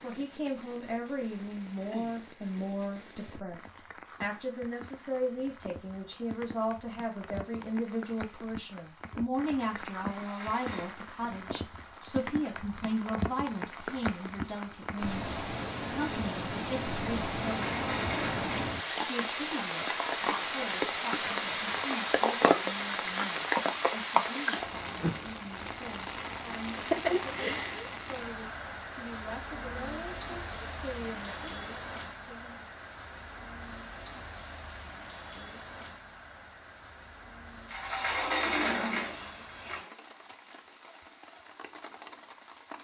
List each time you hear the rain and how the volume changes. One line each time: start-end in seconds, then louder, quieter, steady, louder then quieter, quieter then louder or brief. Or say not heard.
0.0-42.7 louder then quieter.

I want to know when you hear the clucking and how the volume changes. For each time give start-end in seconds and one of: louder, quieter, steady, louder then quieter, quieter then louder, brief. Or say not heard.
not heard.